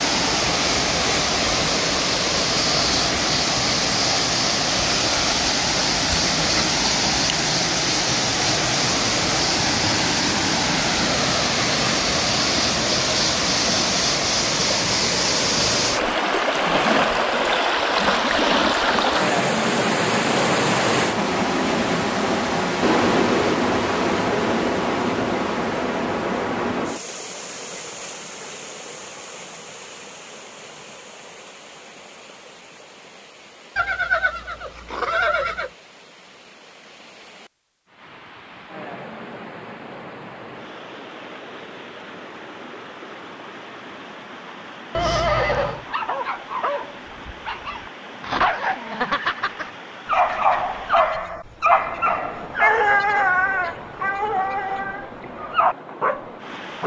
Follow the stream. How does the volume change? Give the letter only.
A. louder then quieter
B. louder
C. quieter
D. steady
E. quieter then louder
C.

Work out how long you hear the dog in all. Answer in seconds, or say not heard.
11 s.